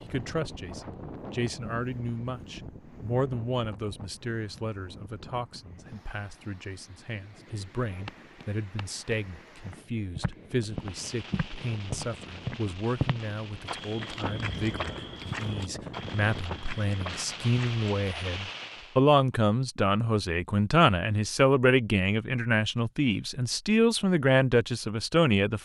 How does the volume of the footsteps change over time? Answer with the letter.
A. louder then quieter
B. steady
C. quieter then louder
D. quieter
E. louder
A.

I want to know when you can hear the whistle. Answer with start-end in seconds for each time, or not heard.
not heard.